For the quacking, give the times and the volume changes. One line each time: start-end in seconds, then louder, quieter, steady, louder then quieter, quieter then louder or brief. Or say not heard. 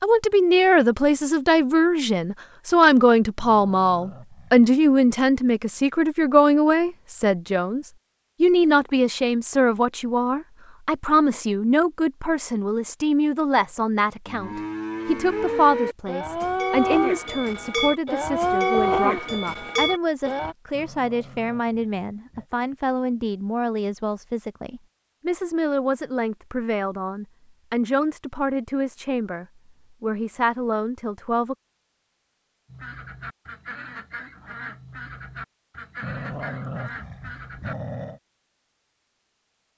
32.6-37.8 steady.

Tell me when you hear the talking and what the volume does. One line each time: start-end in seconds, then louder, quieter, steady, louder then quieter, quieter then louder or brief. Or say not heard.
0.0-31.6 quieter.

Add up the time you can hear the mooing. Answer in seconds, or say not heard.
6 s.